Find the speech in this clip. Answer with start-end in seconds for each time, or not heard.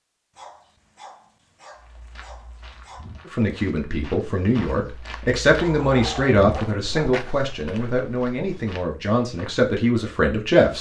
3.2-10.7.